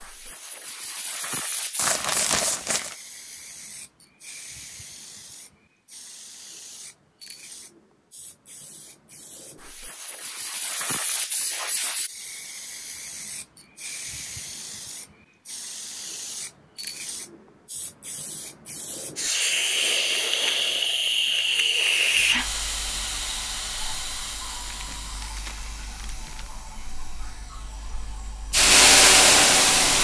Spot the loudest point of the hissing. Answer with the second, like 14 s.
29 s.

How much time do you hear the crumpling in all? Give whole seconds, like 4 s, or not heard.
3 s.